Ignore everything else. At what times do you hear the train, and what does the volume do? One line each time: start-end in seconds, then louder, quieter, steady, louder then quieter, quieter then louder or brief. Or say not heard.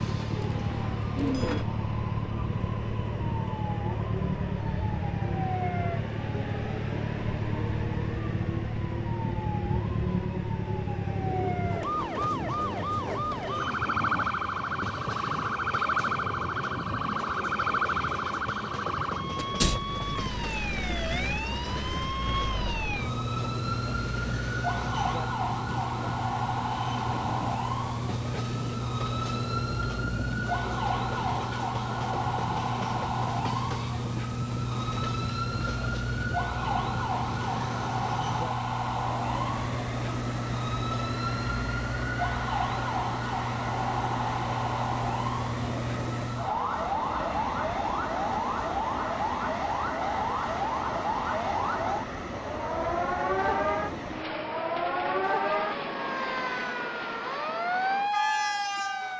0.0-59.1 steady.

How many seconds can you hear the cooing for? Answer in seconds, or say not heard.
2 s.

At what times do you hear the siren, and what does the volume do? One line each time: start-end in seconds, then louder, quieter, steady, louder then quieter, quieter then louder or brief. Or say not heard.
0.0-59.1 steady.